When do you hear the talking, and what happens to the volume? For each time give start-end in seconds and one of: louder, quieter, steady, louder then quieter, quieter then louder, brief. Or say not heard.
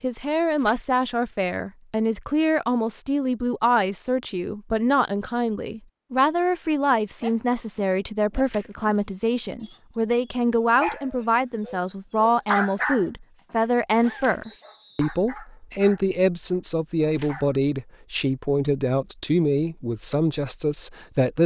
0.0-21.4 steady.